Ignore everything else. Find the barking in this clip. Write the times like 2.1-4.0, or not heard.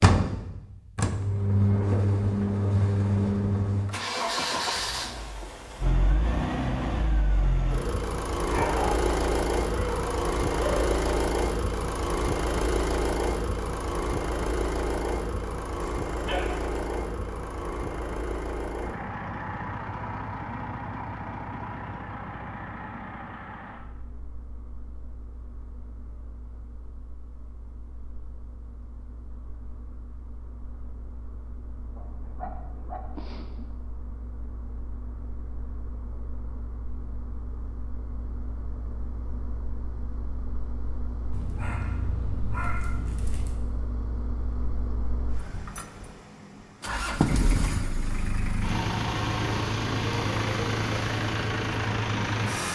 8.4-11.0, 15.8-16.8, 31.9-33.8, 41.3-43.6.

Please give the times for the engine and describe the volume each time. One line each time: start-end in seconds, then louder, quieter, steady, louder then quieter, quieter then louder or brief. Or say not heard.
0.0-52.7 quieter then louder.